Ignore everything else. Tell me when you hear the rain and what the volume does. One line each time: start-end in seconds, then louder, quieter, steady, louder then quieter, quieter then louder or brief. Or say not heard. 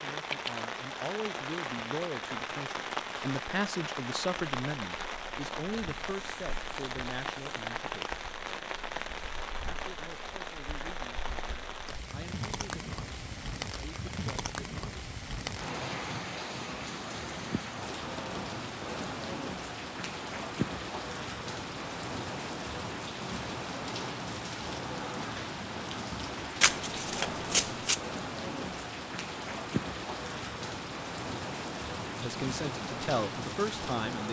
0.0-34.2 steady.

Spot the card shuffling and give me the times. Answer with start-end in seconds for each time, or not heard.
26.6-28.0.